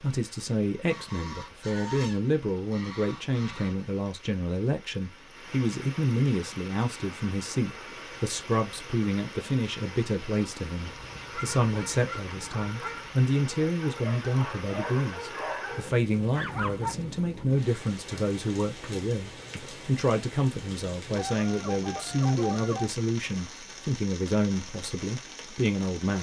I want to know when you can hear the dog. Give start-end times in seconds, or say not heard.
11.3-17.4.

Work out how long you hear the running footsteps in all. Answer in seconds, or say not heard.
not heard.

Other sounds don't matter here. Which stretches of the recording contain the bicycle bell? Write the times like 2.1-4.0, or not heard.
not heard.